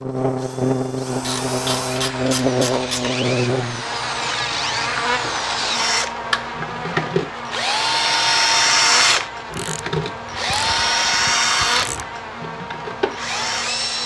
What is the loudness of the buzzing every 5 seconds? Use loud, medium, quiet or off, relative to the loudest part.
loud, medium, medium.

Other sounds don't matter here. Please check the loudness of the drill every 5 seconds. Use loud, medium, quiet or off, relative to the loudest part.
medium, loud, loud.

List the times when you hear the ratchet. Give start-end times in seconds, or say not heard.
1.2-3.1, 9.5-12.1.